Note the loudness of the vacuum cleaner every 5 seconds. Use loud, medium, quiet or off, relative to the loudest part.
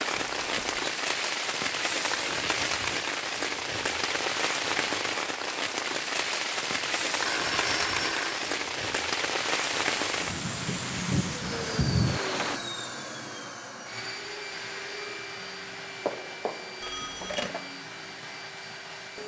off, off, loud, loud.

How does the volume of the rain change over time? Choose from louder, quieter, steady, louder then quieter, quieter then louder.
steady.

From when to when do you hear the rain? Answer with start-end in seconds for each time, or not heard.
0.0-12.6.